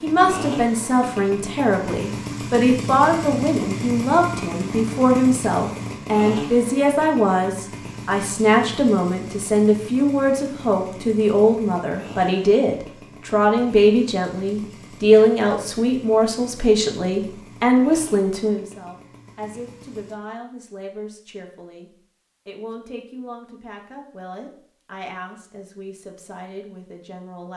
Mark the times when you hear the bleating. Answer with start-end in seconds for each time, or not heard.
not heard.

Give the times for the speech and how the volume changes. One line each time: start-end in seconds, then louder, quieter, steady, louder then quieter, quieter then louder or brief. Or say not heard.
0.0-27.5 quieter.